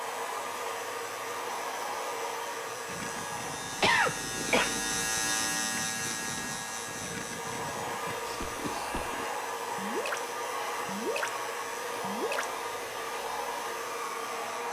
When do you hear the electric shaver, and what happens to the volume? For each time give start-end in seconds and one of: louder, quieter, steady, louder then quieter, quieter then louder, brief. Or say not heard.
0.0-14.6 louder then quieter.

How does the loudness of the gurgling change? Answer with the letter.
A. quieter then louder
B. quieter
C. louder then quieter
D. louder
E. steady
D.